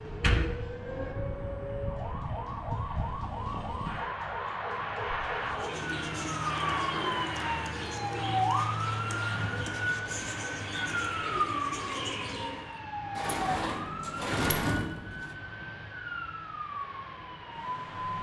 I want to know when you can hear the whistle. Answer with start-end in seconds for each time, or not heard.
not heard.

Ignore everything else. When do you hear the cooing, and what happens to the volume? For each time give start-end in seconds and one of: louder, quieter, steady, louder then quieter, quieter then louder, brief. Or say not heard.
5.3-12.8 steady.